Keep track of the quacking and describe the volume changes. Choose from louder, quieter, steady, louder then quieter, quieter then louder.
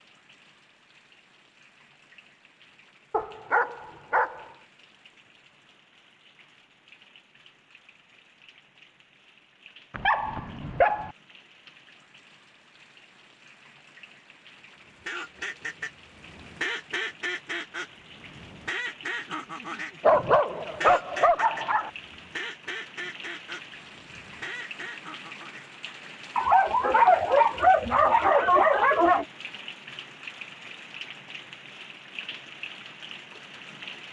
quieter.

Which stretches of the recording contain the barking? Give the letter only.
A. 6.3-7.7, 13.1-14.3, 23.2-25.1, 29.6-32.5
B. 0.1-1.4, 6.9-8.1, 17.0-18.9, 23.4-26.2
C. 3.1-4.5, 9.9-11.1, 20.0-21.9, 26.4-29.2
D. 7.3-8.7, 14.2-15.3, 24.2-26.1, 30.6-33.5
C.